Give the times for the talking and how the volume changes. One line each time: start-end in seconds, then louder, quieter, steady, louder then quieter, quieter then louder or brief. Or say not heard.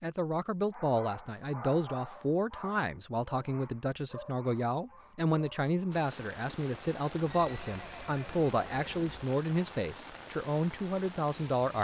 0.0-11.7 steady.